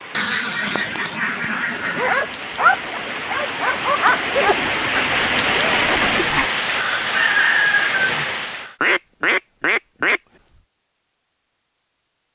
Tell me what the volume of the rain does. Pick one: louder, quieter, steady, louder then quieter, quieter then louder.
louder.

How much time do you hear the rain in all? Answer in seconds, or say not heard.
9 s.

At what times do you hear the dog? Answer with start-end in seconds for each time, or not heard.
1.8-4.5.